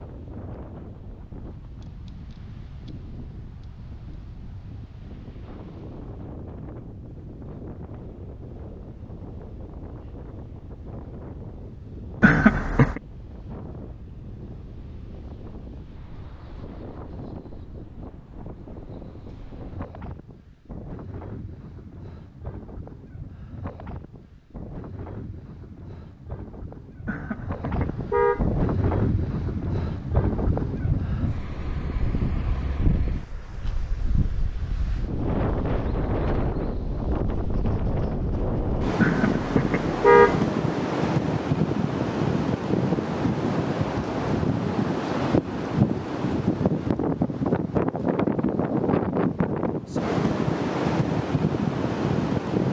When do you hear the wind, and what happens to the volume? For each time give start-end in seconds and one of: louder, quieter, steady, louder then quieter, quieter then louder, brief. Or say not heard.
0.0-52.6 louder.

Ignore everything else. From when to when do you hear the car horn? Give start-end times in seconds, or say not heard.
12.2-13.0, 27.1-28.4, 39.0-40.4.